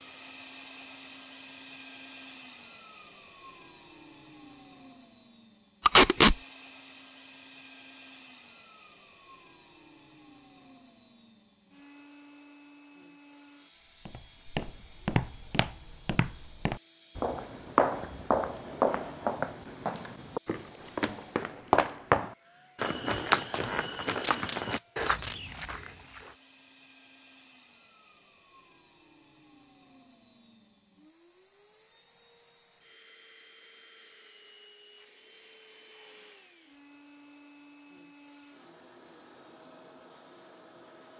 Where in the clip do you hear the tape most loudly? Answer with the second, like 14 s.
6 s.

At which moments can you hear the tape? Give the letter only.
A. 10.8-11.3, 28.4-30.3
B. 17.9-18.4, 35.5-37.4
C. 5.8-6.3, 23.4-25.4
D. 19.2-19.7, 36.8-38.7
C.